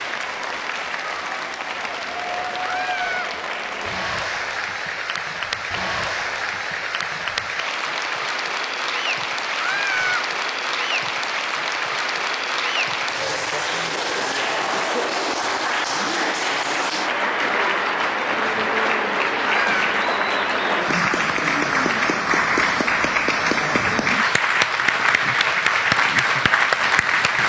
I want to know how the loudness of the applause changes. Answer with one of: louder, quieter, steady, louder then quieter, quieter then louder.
louder.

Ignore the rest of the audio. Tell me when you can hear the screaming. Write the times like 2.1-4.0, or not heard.
2.6-3.4, 9.6-10.2, 19.4-19.9.